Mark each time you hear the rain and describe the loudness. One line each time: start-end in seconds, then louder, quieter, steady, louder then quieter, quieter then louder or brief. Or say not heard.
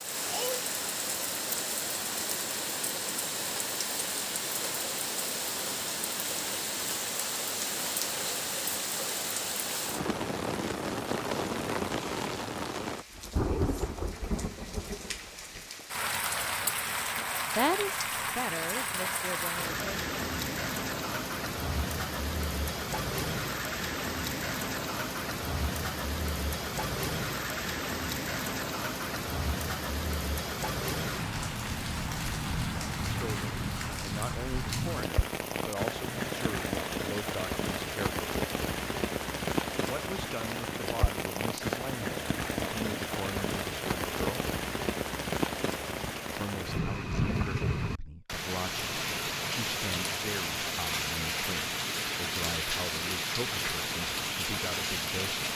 0.0-55.5 steady.